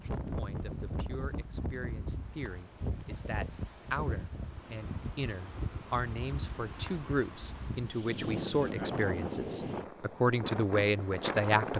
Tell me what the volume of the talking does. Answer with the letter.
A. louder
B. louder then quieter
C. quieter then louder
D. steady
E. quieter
A.